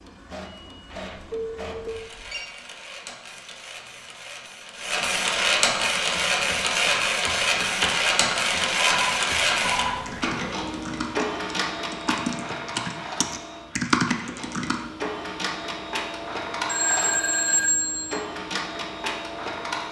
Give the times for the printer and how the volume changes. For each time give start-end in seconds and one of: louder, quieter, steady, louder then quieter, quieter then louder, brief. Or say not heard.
0.0-19.8 louder then quieter.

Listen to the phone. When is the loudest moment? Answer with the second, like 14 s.
18 s.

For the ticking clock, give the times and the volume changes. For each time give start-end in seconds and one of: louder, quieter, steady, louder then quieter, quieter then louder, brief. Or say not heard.
not heard.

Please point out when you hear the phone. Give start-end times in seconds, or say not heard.
0.9-2.5, 9.0-10.2, 16.6-18.2.